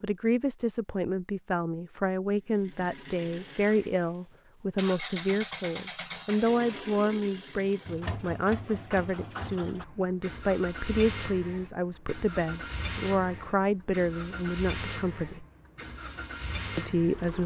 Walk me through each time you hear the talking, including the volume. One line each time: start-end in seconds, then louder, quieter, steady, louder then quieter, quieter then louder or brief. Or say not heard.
0.0-15.4 steady
16.8-17.4 brief.